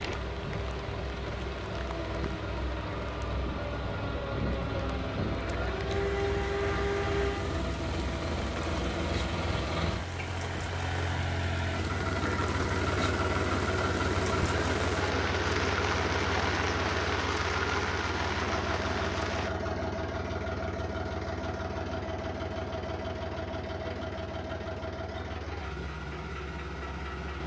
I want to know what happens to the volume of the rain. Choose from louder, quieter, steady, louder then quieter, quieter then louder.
louder.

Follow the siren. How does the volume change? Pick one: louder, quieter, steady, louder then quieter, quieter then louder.
louder.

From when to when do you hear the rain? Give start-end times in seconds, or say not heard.
0.0-19.5.